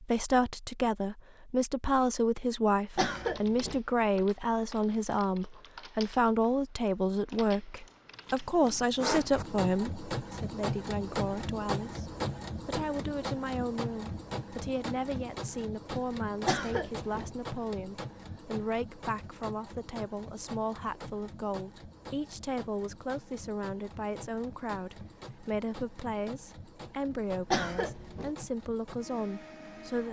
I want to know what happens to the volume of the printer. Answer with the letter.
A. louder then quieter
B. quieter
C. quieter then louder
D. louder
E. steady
B.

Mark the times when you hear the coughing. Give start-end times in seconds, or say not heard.
3.0-3.8, 16.4-17.3, 27.5-28.4.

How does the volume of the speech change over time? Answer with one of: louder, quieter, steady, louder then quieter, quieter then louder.
quieter.